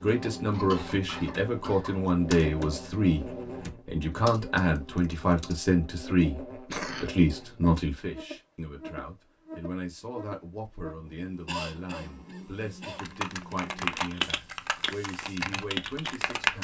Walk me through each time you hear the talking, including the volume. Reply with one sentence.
You can hear the talking from 0.0 to 16.5 s, getting quieter.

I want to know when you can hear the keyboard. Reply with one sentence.
The keyboard can be heard from 0.0 to 5.6 s and from 12.9 to 16.5 s.